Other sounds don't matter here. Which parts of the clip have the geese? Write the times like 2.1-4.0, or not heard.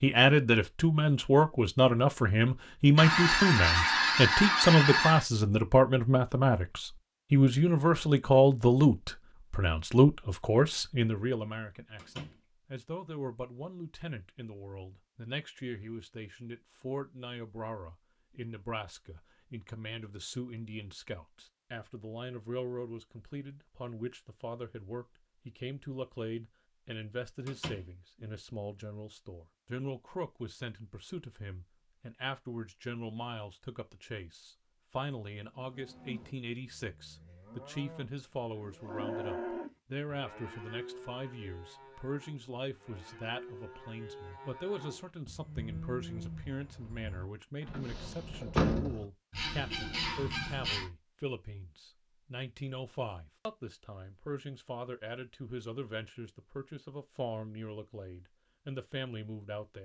3.0-5.2, 49.3-50.9.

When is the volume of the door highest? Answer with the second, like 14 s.
49 s.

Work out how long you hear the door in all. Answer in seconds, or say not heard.
2 s.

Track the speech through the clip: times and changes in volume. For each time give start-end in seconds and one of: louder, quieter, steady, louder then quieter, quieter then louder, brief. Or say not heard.
0.0-59.7 quieter.